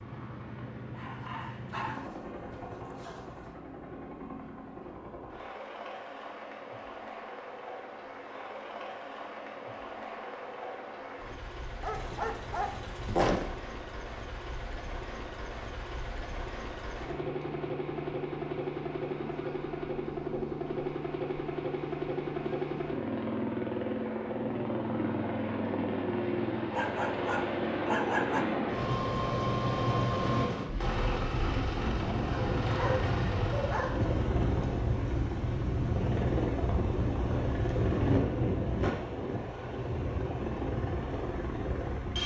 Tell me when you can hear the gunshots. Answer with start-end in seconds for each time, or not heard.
not heard.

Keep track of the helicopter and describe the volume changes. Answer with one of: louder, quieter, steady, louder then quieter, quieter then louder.
louder.